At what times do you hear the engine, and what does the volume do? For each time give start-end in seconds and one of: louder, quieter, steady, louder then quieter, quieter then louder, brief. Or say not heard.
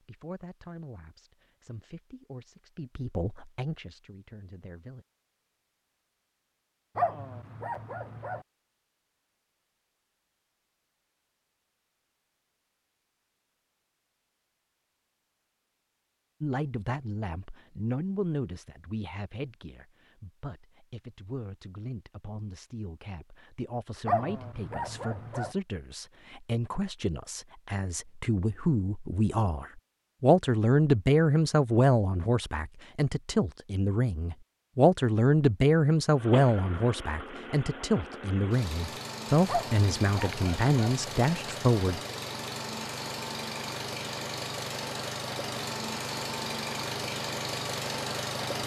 36.1-48.6 louder.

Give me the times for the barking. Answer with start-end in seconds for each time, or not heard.
7.0-8.4, 24.1-25.6, 39.5-41.0.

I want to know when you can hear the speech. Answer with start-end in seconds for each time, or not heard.
0.0-5.0, 16.4-42.0.